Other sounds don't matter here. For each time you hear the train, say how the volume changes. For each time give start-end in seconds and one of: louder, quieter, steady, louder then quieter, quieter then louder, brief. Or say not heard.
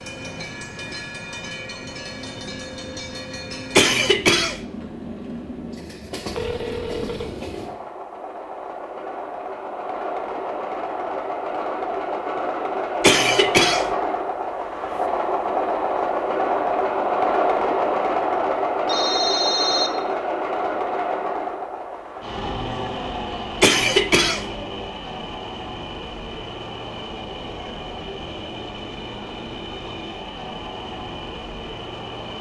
0.0-32.3 louder then quieter.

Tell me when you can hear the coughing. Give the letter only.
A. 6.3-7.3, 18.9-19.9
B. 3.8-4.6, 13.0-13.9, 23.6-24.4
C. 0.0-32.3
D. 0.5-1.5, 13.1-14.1
B.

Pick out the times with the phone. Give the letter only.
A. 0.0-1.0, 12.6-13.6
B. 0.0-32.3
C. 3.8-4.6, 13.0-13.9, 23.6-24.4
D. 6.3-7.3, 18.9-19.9
D.